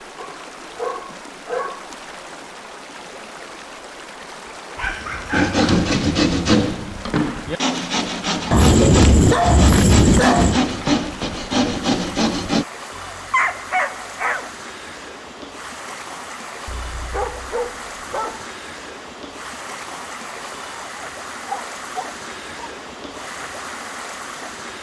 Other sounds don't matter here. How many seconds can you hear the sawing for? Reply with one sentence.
The sawing can be heard for 7 seconds in total.